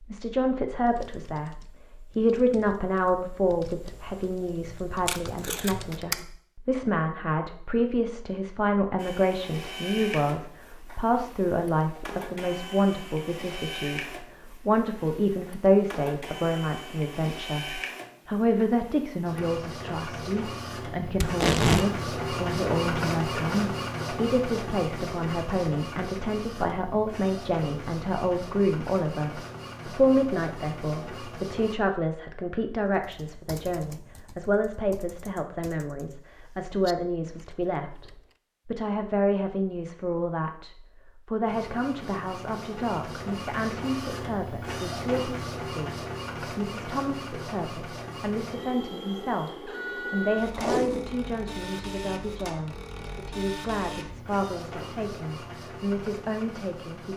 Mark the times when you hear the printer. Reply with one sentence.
You can hear the printer from 8.9 to 31.8 s and from 41.5 to 57.1 s.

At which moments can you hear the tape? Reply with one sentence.
The tape can be heard from 5.0 to 6.2 s, from 21.2 to 21.9 s and from 50.5 to 51.1 s.